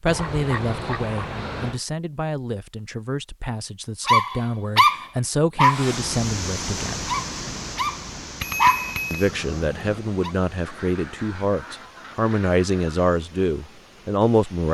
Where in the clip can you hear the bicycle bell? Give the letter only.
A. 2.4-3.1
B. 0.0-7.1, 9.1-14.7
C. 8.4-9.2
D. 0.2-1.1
C.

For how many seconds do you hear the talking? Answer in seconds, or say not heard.
13 s.